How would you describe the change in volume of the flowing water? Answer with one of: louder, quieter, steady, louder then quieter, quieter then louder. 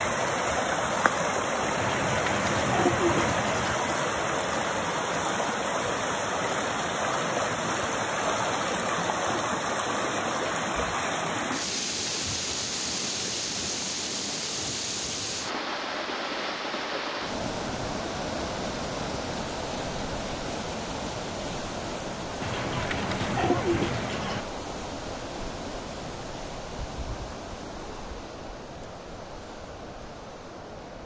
quieter.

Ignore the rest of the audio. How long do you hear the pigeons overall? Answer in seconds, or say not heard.
4 s.